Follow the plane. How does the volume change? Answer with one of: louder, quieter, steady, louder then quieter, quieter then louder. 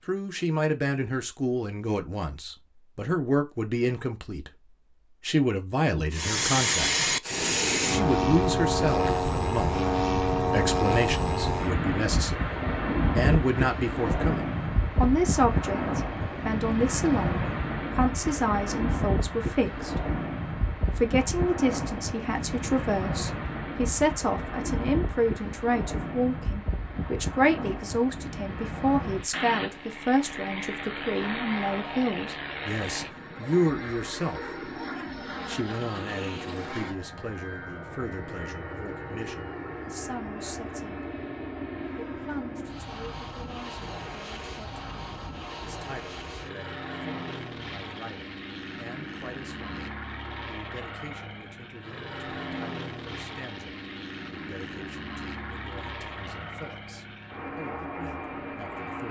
quieter.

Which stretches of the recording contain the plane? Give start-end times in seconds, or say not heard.
6.1-59.0.